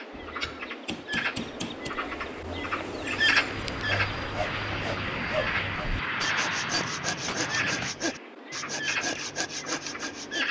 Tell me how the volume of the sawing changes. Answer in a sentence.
The volume of the sawing goes up.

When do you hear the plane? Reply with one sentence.
You can hear the plane from 3.3 to 8.0 s.